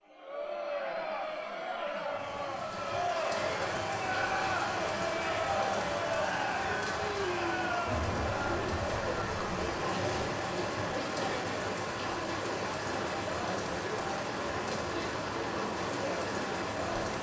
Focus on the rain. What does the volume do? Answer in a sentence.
The loudness of the rain stays about the same.